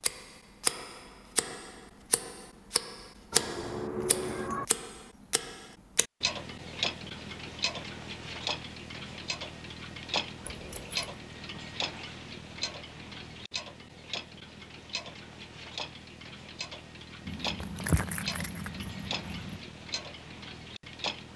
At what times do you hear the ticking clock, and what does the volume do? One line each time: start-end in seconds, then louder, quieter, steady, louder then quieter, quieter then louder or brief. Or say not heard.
0.0-21.3 quieter.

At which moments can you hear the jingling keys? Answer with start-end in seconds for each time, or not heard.
3.3-4.7, 10.4-11.2, 17.2-19.6.